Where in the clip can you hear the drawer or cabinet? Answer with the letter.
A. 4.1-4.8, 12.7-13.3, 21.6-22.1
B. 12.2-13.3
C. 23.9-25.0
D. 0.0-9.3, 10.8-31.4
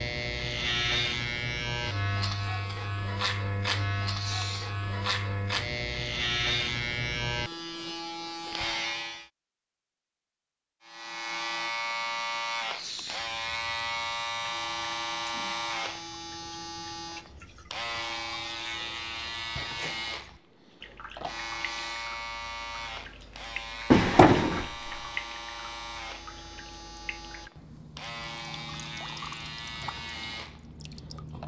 C.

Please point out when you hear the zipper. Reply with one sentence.
The zipper can't be heard in this clip.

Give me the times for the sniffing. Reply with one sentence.
You can hear the sniffing from 4.1 to 4.8 s, from 12.7 to 13.3 s and from 21.6 to 22.1 s.